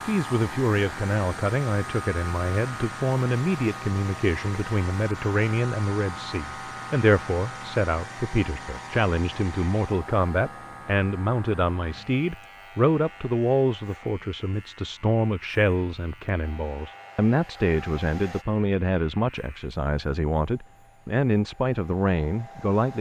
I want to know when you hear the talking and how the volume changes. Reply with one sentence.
The talking can be heard from 0.0 to 22.9 s, at a steady volume.